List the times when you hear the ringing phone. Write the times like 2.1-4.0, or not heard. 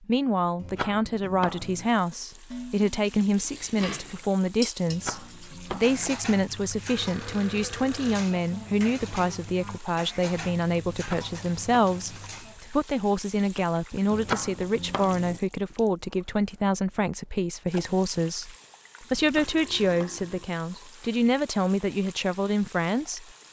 not heard.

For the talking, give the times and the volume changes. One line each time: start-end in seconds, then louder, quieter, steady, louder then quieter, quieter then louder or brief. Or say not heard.
0.0-23.2 steady.